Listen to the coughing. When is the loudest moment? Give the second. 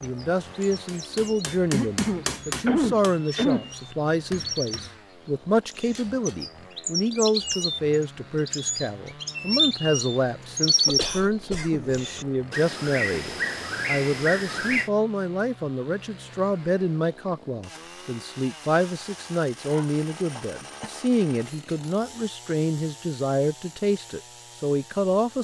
3 s.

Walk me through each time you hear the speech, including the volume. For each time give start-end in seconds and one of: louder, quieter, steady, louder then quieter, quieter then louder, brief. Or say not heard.
0.0-25.3 steady.